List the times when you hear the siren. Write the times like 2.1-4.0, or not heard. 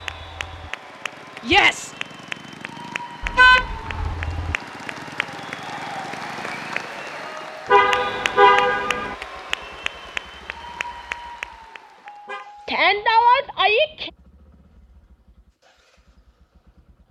not heard.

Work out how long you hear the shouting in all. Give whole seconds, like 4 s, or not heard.
2 s.